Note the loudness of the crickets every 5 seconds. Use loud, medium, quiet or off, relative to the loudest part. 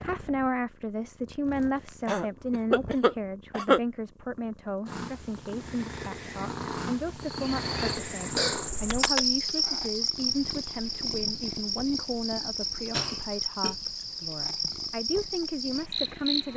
off, loud, loud, loud.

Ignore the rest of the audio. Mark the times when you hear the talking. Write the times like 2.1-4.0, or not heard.
0.0-16.5.